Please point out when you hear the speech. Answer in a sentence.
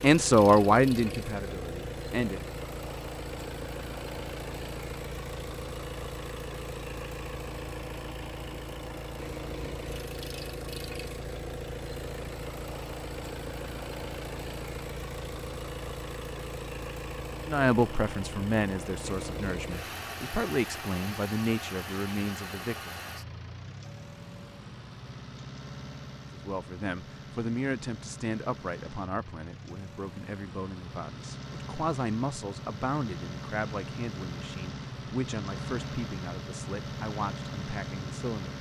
You can hear the speech from 0.0 to 2.4 s, from 17.4 to 22.9 s and from 26.3 to 38.5 s.